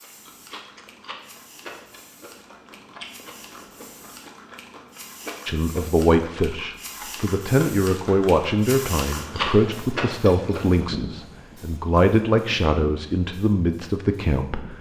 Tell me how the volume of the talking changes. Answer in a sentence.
The volume of the talking stays about the same.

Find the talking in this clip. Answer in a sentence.
You can hear the talking from 5.5 to 14.7 s.